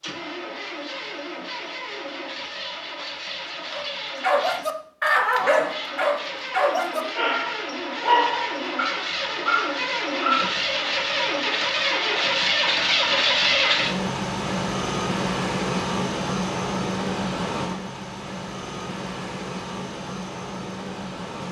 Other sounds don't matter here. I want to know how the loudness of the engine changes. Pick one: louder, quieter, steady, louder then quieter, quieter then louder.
louder then quieter.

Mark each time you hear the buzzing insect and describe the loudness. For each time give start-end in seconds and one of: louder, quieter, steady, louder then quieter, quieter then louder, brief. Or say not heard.
not heard.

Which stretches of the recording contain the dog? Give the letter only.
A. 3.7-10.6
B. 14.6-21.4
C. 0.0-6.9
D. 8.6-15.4
A.